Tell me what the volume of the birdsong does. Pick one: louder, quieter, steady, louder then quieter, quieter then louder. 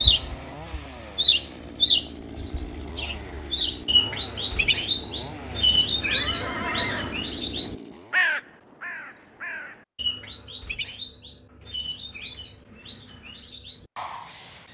quieter.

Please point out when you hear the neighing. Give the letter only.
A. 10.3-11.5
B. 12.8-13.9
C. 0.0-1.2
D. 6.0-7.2
D.